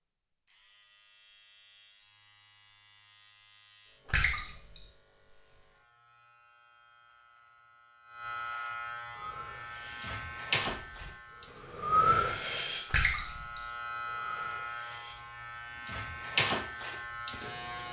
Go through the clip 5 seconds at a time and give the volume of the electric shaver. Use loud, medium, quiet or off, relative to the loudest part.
quiet, medium, loud, loud.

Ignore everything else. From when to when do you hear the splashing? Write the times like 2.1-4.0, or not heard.
4.1-4.8, 12.9-13.6.